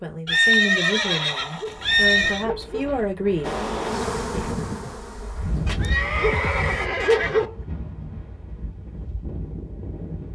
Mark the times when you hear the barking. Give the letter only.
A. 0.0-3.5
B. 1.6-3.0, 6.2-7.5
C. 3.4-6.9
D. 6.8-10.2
B.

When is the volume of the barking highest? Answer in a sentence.
The volume of the barking peaks at 7 seconds.